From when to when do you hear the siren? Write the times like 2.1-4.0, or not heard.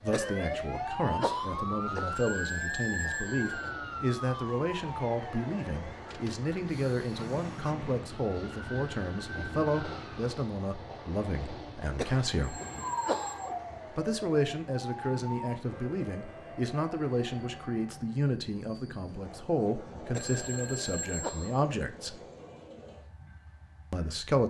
0.0-10.3, 12.3-18.3.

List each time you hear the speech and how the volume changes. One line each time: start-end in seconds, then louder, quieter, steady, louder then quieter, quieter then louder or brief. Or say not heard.
0.0-12.6 steady
13.9-22.2 steady
23.9-24.4 brief.